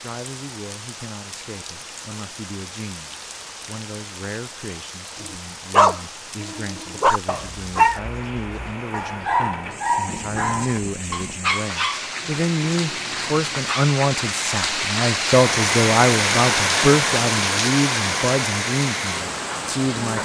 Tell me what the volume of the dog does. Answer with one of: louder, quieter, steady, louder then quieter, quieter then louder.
quieter.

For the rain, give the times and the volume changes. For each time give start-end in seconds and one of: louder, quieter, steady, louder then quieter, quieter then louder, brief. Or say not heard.
0.0-20.2 louder.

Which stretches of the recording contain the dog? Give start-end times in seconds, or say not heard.
5.2-13.8.